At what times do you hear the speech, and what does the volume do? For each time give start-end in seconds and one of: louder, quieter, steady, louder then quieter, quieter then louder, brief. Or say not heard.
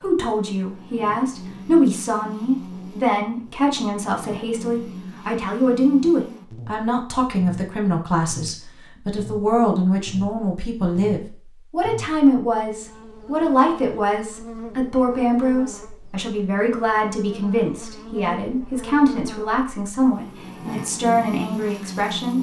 0.0-22.3 steady.